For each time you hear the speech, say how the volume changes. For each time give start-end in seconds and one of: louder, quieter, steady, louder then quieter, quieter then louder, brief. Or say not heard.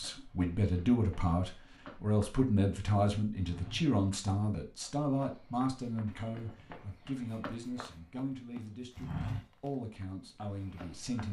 0.0-11.2 quieter.